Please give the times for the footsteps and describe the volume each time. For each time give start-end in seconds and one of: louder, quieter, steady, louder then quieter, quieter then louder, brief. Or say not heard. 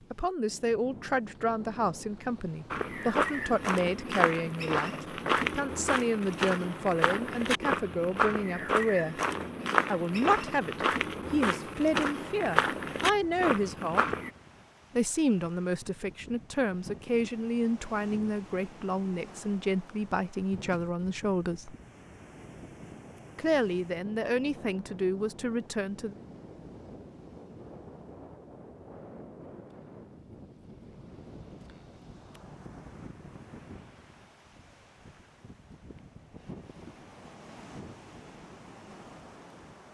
2.7-14.3 steady.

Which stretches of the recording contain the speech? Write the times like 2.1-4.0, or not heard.
0.1-9.2, 9.8-14.2, 14.9-21.8, 23.4-26.1.